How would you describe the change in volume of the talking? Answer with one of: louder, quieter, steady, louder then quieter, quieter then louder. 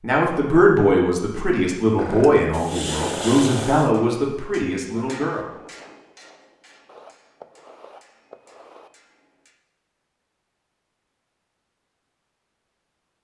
quieter.